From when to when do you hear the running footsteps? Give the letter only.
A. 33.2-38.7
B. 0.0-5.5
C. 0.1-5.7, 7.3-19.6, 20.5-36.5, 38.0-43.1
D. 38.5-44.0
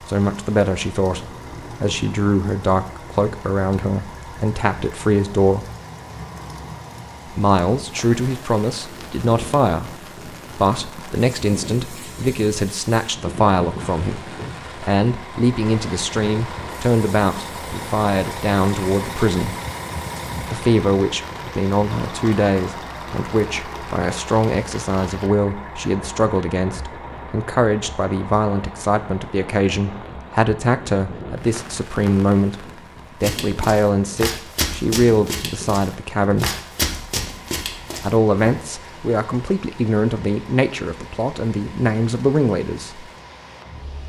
A.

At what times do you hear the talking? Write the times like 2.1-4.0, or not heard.
0.1-5.7, 7.3-19.6, 20.5-36.5, 38.0-43.1.